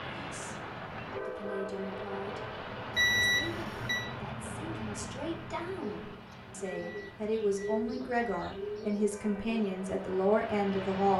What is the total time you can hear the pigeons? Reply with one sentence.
You can hear the pigeons for 4 seconds altogether.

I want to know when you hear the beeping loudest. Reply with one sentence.
The volume of the beeping peaks at 3 seconds.